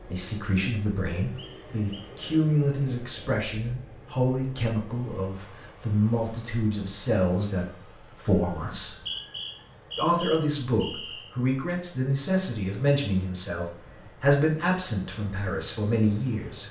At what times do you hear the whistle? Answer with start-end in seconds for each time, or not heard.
1.4-2.8, 8.8-11.3.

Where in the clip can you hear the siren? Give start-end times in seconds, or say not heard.
not heard.